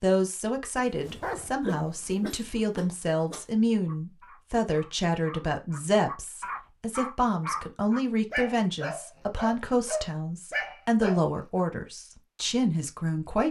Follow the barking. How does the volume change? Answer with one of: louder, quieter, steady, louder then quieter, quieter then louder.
quieter then louder.